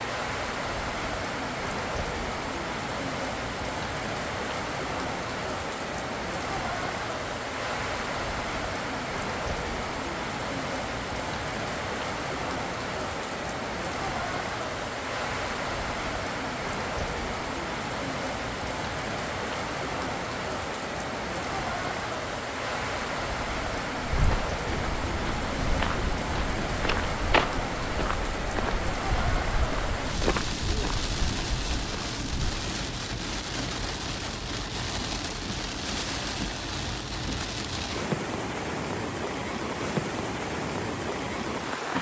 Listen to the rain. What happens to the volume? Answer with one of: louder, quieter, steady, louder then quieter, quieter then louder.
steady.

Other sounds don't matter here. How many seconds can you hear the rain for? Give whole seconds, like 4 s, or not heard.
42 s.